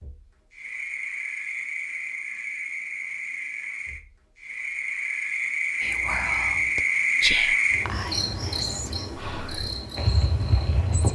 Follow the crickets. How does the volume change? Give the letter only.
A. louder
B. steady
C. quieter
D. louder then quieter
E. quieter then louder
D.